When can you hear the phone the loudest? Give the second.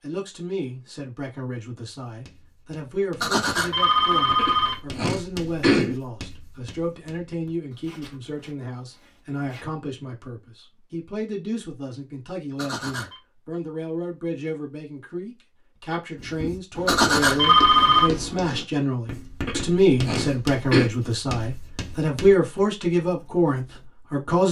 18 s.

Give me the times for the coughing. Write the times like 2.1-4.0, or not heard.
4.3-6.0, 19.4-20.9.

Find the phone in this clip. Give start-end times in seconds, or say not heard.
3.2-4.8, 12.6-13.2, 16.9-18.1.